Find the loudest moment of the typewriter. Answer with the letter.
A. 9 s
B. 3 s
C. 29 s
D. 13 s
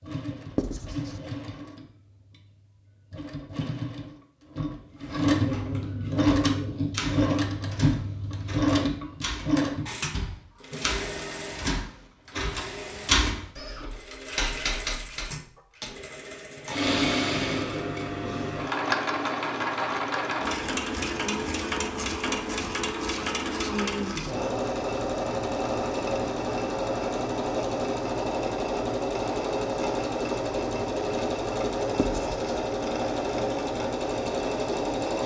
D.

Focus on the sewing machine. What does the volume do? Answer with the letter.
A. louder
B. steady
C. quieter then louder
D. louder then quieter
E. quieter
B.